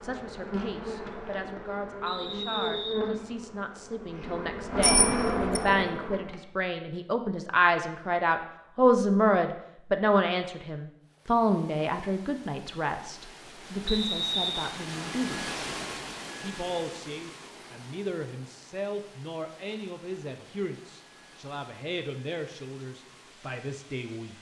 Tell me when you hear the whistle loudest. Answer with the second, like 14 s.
14 s.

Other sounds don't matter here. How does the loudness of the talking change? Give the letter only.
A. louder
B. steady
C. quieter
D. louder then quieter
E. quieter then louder
D.